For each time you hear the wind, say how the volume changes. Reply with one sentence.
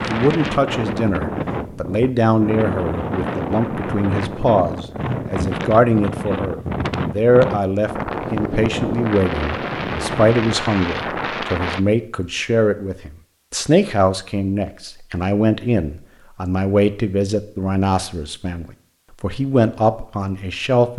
The wind can be heard from 0.0 to 11.8 s, at a steady volume.